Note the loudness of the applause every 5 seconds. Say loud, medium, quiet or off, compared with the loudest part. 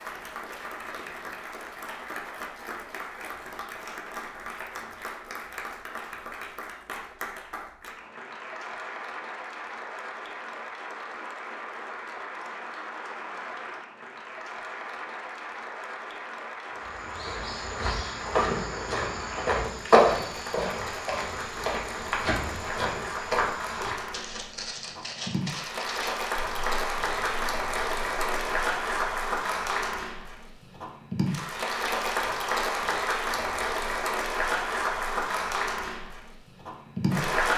medium, medium, medium, medium, medium, loud, loud, loud.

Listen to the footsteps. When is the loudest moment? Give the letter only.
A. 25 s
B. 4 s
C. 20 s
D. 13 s
C.